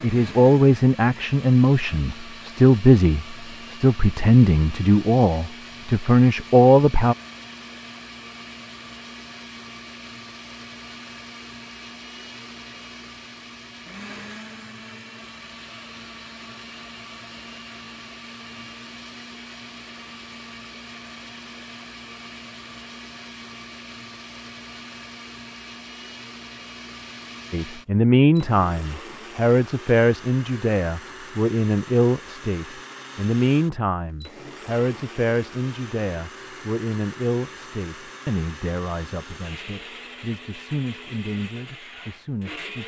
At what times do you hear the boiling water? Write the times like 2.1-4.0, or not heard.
not heard.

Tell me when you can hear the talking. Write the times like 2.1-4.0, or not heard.
0.0-7.2, 27.5-42.8.